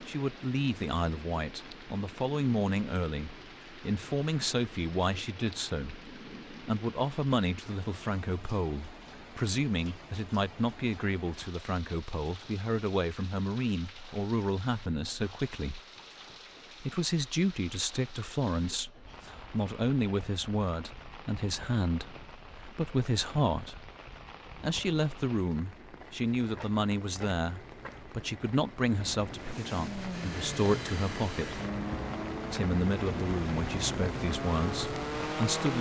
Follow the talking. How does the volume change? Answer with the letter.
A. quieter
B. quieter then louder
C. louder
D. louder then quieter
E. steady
E.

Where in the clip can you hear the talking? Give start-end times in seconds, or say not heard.
0.0-15.8, 16.8-23.9, 24.6-31.6, 32.5-35.7.